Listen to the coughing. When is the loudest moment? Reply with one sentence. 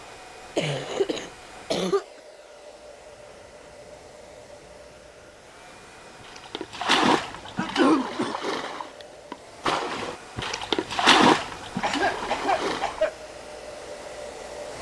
The loudest moment of the coughing is at 8 seconds.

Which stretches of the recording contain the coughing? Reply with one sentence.
You can hear the coughing from 0.6 to 2.0 s, from 7.5 to 8.3 s and from 11.8 to 13.1 s.